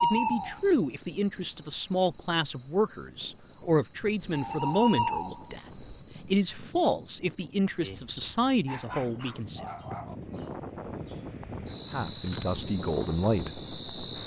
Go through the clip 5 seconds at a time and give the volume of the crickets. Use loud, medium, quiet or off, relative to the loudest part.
loud, medium, medium.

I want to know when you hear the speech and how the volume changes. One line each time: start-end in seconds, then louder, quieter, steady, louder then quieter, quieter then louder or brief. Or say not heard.
0.0-9.7 steady
11.9-14.2 brief.